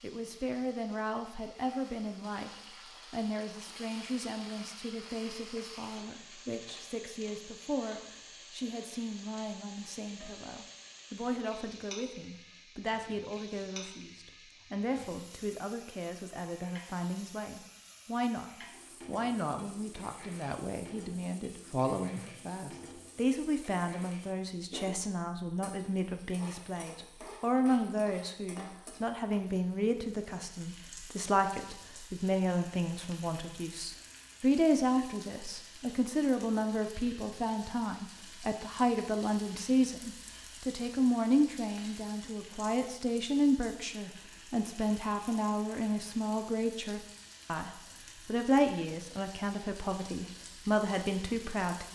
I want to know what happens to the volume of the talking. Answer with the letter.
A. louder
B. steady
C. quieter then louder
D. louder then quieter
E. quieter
A.